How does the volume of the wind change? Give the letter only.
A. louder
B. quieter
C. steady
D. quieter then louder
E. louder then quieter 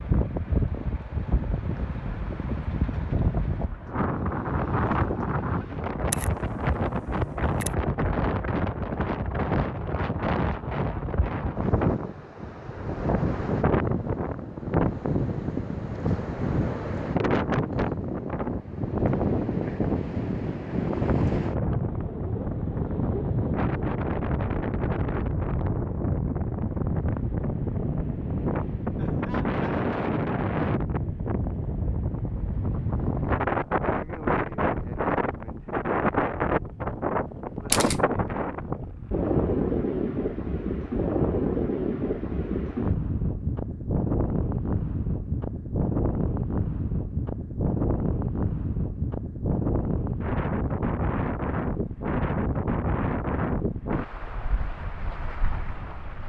C.